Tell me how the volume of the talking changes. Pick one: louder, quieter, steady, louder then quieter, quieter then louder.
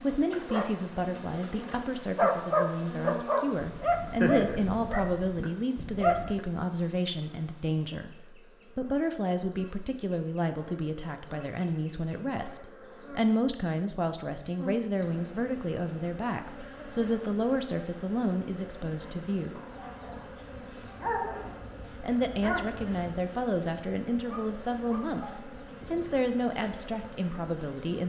steady.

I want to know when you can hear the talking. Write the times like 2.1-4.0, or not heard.
0.0-19.6, 22.0-28.0.